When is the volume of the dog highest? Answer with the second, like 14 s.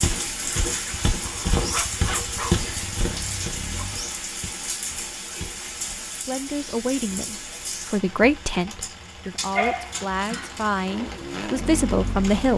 10 s.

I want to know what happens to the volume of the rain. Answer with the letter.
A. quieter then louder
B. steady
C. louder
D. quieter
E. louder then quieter
D.